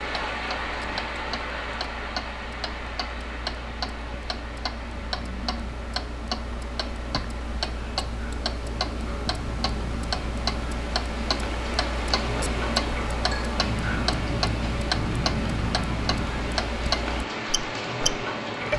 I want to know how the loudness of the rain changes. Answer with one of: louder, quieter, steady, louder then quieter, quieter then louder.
quieter then louder.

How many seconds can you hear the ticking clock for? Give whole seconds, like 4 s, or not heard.
19 s.